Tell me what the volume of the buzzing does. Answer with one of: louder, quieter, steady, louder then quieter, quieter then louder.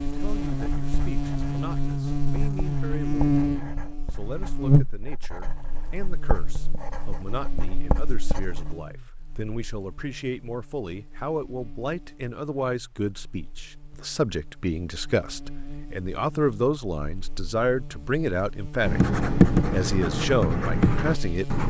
quieter then louder.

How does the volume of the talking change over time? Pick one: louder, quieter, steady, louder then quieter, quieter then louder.
louder.